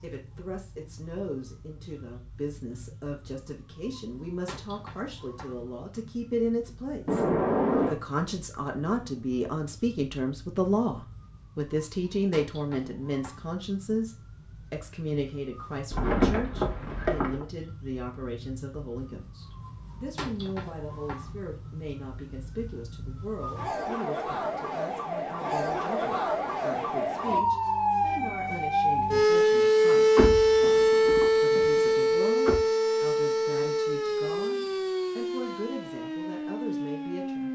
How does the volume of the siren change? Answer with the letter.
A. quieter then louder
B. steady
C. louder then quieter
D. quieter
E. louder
E.